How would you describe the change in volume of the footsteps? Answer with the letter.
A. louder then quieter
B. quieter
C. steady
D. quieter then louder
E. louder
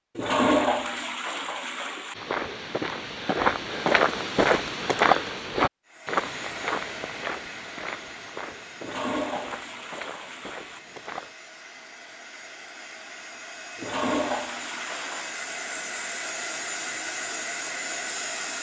B.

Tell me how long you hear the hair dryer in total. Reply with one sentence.
You can hear the hair dryer for 13 seconds altogether.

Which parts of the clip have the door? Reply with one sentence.
You can't hear the door here.